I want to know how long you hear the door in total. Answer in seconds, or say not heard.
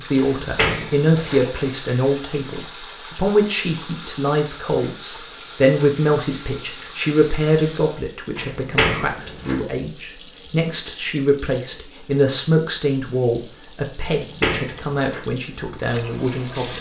4 s.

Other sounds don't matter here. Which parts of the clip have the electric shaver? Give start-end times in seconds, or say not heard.
not heard.